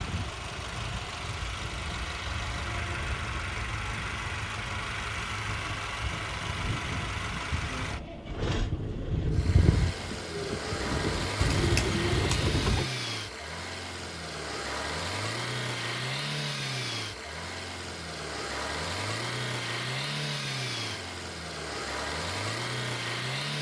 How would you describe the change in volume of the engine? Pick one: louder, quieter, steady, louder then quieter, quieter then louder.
steady.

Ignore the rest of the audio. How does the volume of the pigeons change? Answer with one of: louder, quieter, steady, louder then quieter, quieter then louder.
quieter then louder.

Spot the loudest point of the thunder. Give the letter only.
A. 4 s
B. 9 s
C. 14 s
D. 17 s
B.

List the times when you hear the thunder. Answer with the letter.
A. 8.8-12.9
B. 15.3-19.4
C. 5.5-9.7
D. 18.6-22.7
C.